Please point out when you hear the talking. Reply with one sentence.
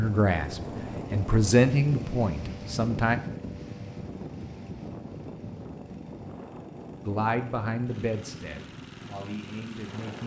The talking can be heard from 0.0 to 3.1 s and from 7.0 to 10.2 s.